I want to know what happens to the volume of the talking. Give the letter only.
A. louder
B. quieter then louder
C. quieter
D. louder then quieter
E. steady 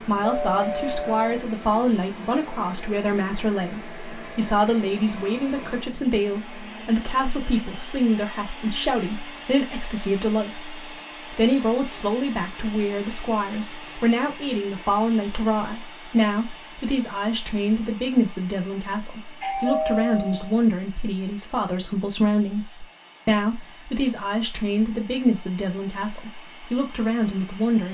E.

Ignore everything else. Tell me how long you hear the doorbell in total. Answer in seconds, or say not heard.
2 s.